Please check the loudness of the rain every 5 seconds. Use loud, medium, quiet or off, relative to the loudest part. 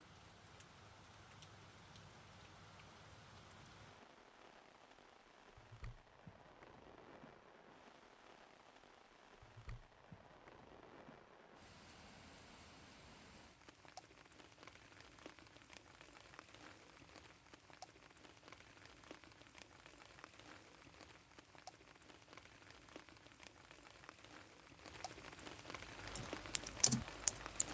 medium, medium, medium, medium, medium, loud.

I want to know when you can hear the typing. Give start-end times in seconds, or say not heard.
26.1-27.6.